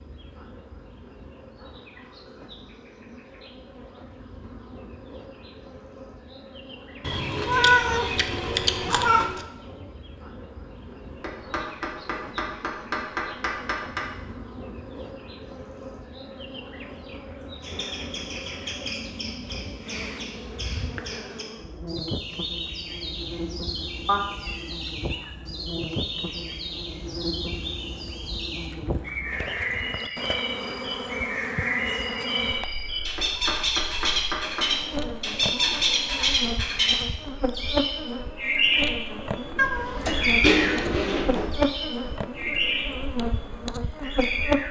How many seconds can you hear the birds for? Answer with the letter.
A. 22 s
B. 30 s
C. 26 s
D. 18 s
C.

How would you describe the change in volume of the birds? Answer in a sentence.
The loudness of the birds goes up.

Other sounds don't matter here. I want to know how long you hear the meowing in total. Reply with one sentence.
The meowing can be heard for 6 seconds in total.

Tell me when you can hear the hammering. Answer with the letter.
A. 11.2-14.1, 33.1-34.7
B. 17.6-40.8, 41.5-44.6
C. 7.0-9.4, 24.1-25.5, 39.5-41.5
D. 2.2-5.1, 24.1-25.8
A.